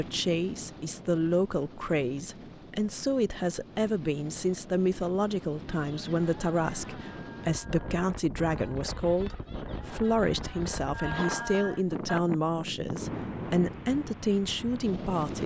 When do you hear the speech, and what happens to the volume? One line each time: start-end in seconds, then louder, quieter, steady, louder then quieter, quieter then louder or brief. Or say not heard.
0.0-15.4 steady.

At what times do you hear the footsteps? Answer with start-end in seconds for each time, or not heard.
not heard.